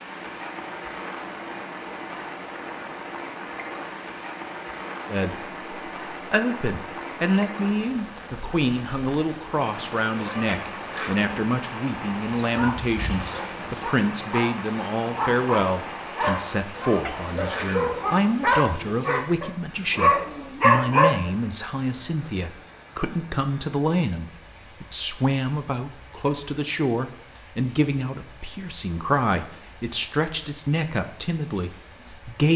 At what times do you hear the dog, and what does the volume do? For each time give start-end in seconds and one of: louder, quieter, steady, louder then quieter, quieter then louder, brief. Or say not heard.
12.4-21.3 louder.